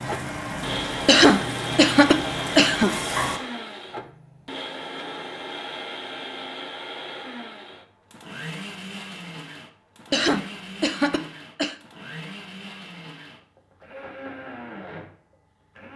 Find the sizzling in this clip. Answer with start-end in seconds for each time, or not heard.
0.0-3.4.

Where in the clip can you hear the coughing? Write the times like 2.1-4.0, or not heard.
1.1-2.9, 10.1-11.8.